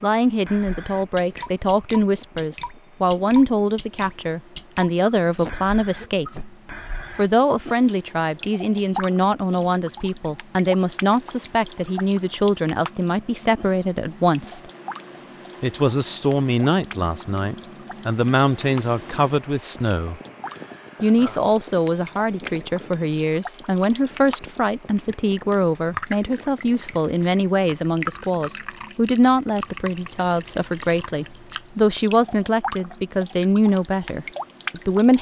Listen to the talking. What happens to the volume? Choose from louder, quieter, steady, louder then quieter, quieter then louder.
steady.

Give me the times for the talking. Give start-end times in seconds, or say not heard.
0.0-6.5, 7.2-14.6, 15.6-20.2, 21.0-35.1.